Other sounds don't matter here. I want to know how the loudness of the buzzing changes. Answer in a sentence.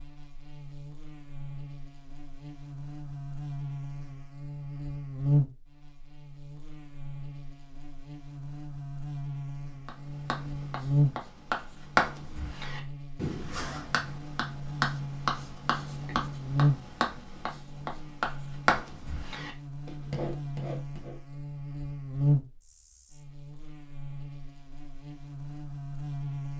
The loudness of the buzzing goes down, then up.